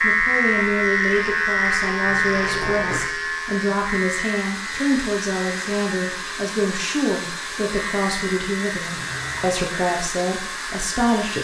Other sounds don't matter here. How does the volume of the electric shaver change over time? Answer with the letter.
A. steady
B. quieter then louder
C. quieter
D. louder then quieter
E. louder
C.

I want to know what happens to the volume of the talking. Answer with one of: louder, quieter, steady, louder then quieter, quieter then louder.
steady.